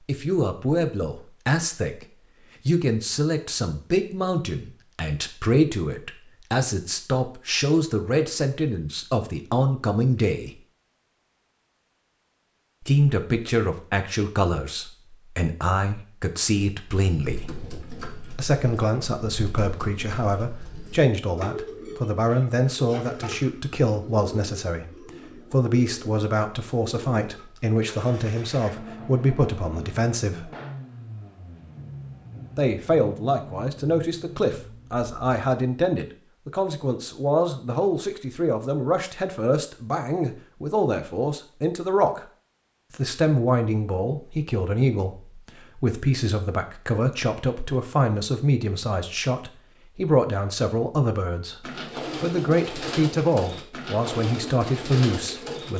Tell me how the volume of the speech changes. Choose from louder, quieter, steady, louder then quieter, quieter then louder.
steady.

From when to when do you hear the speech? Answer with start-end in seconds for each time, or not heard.
0.0-10.6, 12.8-17.5, 18.3-30.5, 32.5-42.2, 42.9-55.7.